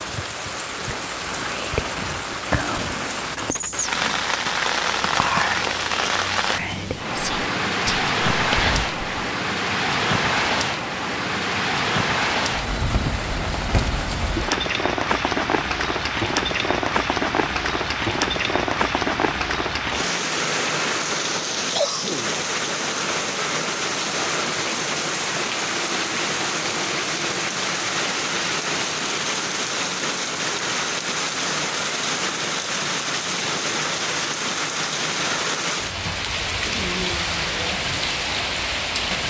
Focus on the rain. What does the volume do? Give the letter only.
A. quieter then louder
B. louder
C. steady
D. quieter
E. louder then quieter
C.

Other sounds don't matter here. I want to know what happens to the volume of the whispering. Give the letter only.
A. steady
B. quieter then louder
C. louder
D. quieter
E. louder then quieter
A.